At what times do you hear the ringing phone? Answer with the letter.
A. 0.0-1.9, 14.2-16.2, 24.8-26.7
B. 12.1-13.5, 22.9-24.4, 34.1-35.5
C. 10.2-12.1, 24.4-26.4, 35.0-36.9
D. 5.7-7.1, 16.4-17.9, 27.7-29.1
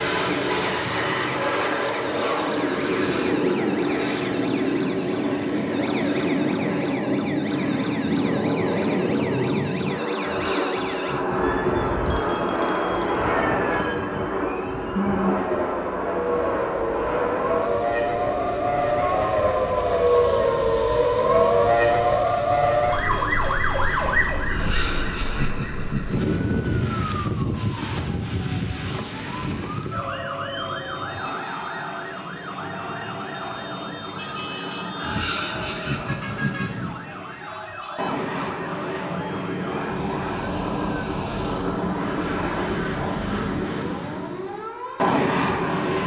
B.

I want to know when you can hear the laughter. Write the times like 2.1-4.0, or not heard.
10.2-12.1, 24.4-26.4, 35.0-36.9.